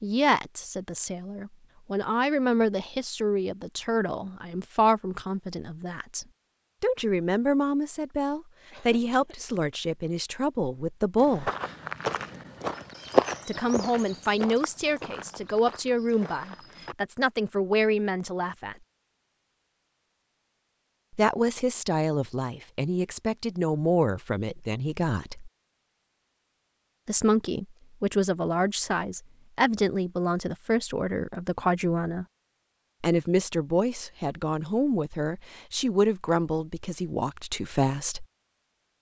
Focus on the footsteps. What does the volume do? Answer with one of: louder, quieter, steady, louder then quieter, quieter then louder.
louder then quieter.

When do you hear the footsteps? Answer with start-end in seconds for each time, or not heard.
11.2-16.9.